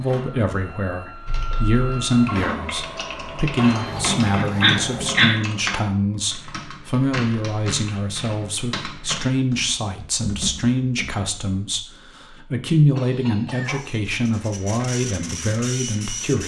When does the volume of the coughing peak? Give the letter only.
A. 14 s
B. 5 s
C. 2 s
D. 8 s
B.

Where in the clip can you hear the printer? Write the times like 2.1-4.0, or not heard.
0.0-5.2, 13.8-16.4.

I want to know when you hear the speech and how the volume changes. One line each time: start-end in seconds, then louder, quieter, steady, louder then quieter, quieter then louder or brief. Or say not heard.
0.0-16.4 steady.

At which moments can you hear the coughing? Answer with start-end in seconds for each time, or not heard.
4.3-5.3, 12.9-13.8.